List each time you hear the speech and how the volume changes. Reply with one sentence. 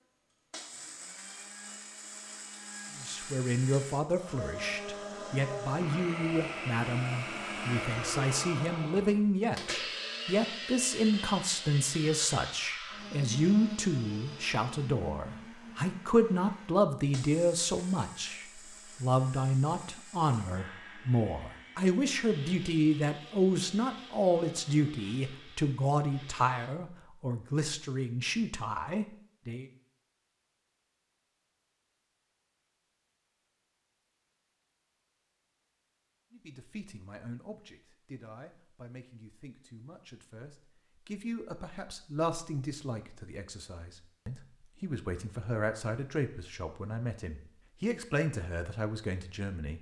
You can hear the speech from 3.0 to 29.6 s, at a steady volume; and from 36.3 to 49.7 s, getting louder.